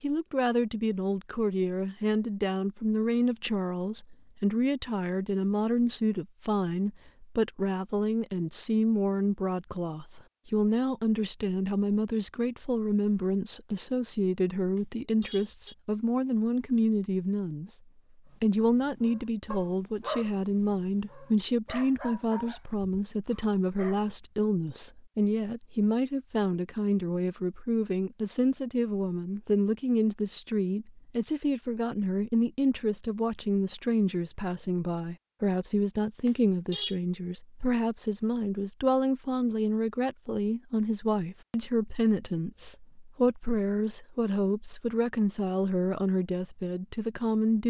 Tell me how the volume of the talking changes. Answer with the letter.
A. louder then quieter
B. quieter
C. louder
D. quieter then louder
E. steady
E.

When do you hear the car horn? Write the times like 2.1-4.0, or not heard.
14.8-15.8, 36.2-37.0.